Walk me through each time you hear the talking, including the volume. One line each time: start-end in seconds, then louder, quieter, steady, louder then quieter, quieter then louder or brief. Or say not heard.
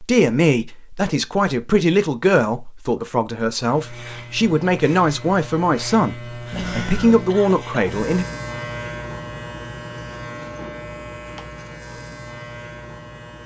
0.0-8.2 steady.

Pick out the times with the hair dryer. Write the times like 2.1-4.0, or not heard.
not heard.